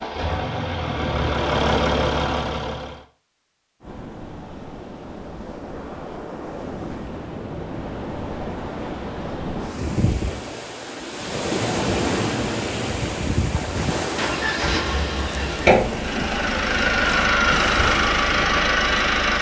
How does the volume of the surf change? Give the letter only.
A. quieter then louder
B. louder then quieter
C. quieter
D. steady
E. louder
B.